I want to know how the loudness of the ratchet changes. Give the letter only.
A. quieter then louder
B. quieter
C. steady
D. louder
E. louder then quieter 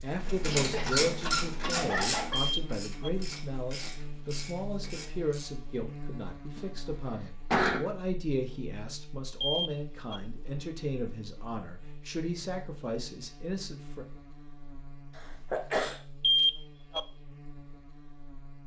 B.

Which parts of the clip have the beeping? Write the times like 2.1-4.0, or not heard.
2.3-3.1, 9.4-10.2, 16.2-17.0.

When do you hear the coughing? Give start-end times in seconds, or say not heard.
0.6-2.4, 6.5-7.8, 15.2-16.0.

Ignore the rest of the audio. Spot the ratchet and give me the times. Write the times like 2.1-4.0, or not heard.
0.2-5.5.